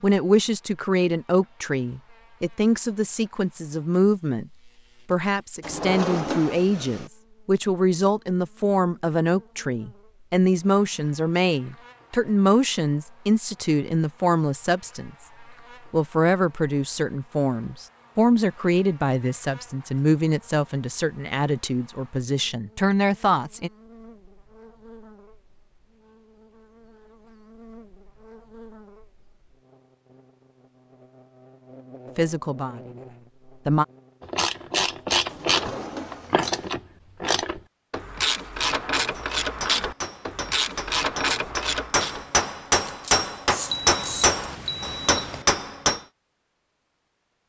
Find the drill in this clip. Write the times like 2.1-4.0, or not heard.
not heard.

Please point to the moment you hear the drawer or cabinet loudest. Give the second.
6 s.